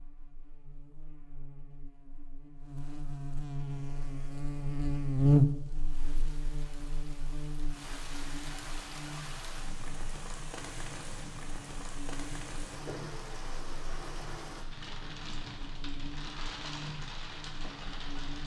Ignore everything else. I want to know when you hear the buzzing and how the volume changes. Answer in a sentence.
The buzzing can be heard from 0.0 to 18.4 s, getting louder then quieter.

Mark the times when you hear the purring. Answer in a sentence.
The purring can't be heard in this clip.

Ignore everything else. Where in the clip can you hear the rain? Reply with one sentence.
You can hear the rain from 3.6 to 18.4 s.